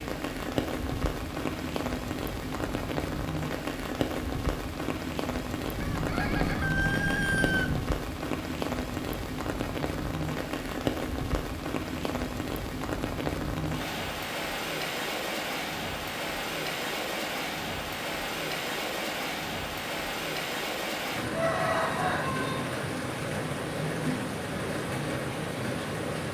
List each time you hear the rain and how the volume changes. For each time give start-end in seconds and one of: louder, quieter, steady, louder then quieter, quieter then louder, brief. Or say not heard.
0.0-26.2 steady.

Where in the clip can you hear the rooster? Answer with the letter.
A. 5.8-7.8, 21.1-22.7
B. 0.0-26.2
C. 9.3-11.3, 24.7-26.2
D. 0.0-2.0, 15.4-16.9
A.